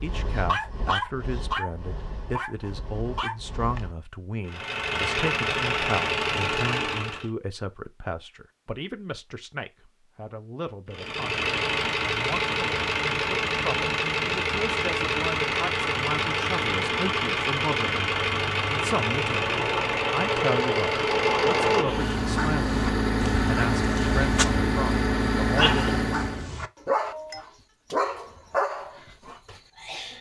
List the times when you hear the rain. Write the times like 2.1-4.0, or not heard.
not heard.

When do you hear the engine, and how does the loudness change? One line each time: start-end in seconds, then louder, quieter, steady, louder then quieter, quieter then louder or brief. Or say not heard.
4.5-7.3 brief
10.9-26.5 steady.